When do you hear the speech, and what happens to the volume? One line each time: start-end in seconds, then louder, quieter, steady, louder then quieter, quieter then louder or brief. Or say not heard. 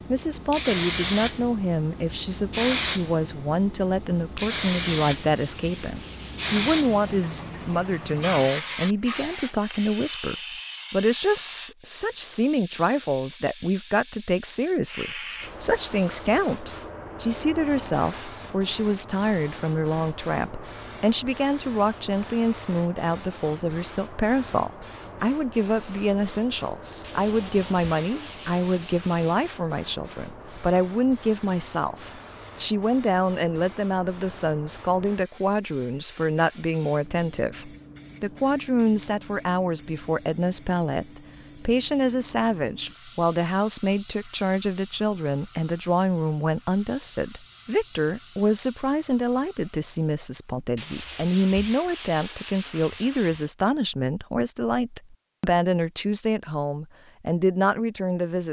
0.1-58.4 steady.